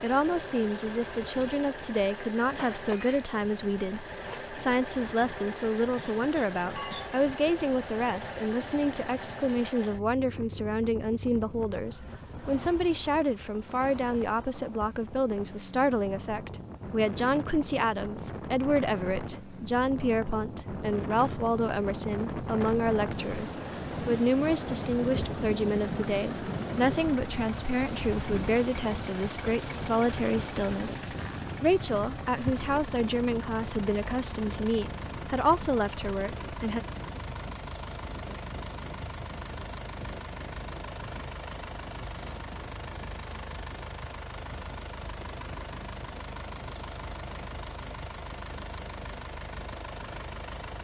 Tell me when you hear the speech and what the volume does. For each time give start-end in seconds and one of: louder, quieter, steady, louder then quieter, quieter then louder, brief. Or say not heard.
0.0-36.8 steady.